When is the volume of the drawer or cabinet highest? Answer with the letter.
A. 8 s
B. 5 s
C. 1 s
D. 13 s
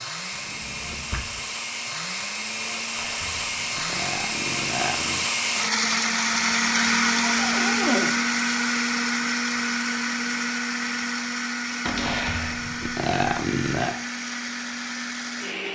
A.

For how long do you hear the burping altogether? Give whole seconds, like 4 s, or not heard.
4 s.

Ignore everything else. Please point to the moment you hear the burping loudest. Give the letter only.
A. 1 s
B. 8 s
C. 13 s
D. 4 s
C.